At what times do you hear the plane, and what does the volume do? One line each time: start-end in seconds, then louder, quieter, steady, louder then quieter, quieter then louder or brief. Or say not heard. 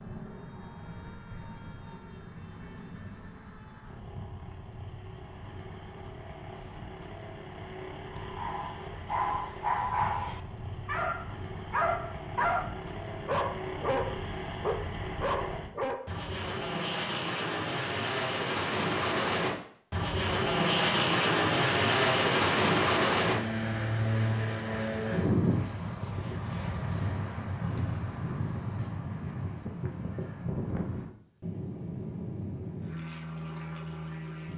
0.0-34.5 louder then quieter.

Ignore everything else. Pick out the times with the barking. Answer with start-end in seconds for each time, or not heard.
8.1-16.1.